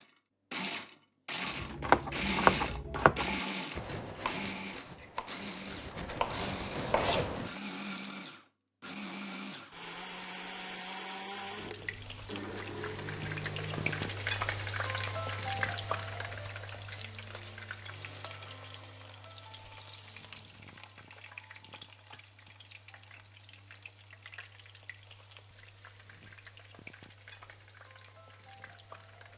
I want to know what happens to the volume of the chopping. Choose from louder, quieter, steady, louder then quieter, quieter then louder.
quieter then louder.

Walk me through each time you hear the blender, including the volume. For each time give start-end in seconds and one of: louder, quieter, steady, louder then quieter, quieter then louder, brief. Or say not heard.
0.0-14.4 quieter.